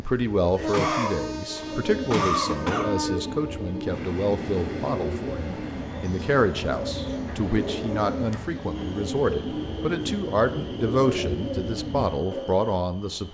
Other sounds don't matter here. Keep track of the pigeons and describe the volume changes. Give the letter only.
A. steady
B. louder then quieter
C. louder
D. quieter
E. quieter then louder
A.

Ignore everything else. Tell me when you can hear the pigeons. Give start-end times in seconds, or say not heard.
1.4-12.6.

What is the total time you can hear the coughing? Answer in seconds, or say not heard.
2 s.